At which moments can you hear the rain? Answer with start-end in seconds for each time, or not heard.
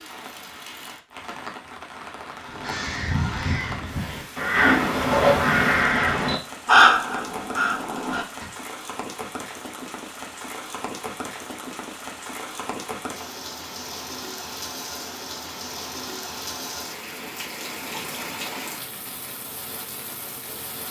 0.0-20.8.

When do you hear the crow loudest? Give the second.
7 s.